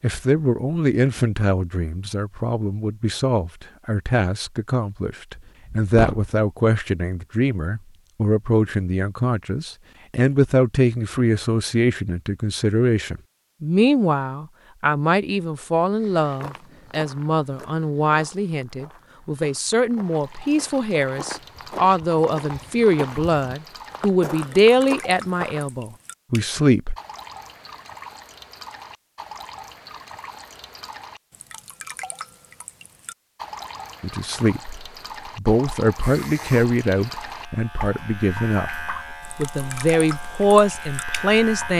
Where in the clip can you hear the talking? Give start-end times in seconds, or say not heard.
0.0-26.9, 34.0-41.7.